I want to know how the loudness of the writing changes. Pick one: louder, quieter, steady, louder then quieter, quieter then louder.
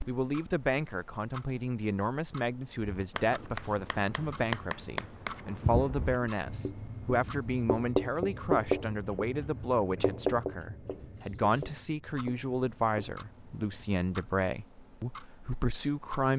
louder then quieter.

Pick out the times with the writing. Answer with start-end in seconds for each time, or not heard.
2.8-13.9.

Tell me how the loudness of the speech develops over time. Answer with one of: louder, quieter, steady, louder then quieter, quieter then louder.
steady.